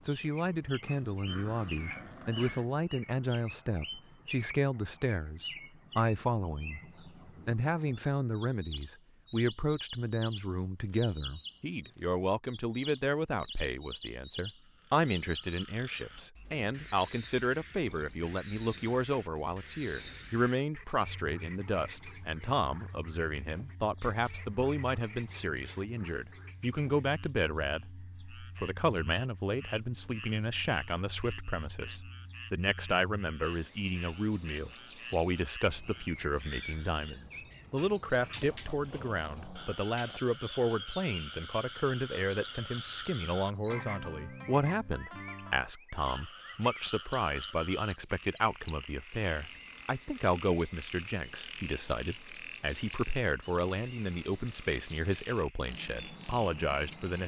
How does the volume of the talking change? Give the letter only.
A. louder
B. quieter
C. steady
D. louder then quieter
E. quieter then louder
C.